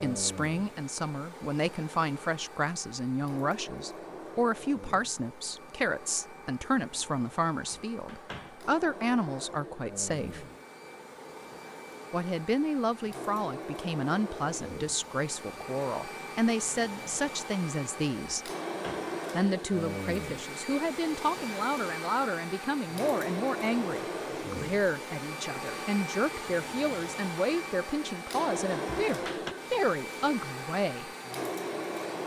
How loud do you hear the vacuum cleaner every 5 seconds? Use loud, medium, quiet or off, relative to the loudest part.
medium, medium, medium, loud, loud, loud, loud.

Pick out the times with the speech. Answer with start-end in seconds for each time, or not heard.
0.0-10.4, 12.1-18.5, 19.3-31.1.